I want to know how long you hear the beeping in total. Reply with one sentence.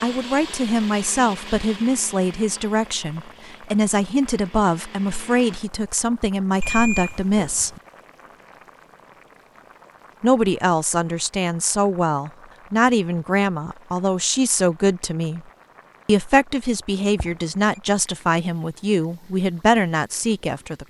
The beeping can be heard for 2 seconds in total.